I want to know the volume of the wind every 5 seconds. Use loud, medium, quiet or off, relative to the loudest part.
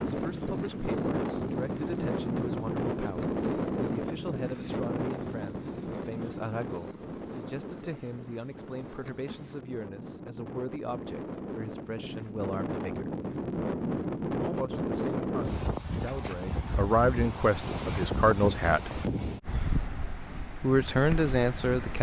loud, medium, loud, loud, medium.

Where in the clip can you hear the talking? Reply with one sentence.
You can hear the talking from 0.0 to 13.1 s, from 14.4 to 19.0 s and from 20.6 to 21.9 s.